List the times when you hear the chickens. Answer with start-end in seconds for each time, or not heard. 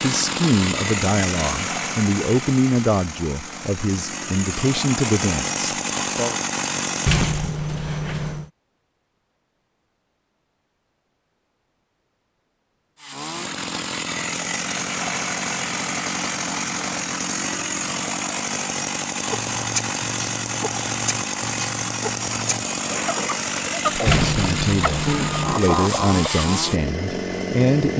19.3-26.4.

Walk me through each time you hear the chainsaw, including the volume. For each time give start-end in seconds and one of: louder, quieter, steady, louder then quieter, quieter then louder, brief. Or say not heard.
0.0-7.6 quieter then louder
13.0-27.9 steady.